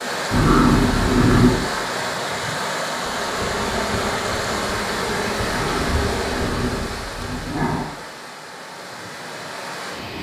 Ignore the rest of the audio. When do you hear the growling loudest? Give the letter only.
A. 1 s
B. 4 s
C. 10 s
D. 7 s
A.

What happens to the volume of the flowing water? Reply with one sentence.
The loudness of the flowing water goes down.